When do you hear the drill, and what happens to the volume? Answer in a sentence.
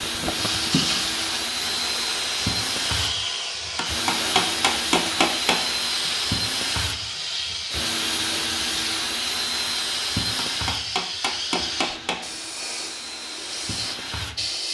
You can hear the drill from 0.0 to 14.5 s, getting quieter.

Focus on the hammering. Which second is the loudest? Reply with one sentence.
The loudest moment of the hammering is at 5 seconds.